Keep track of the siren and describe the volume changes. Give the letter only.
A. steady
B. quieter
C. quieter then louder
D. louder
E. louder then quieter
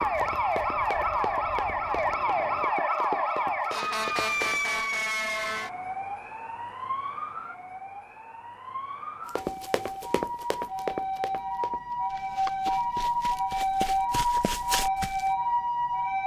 C.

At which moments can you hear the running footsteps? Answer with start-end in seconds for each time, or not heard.
0.0-4.6, 9.3-15.3.